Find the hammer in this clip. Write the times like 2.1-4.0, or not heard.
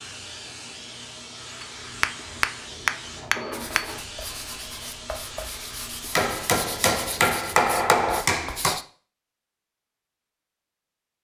1.6-4.0, 6.2-8.8.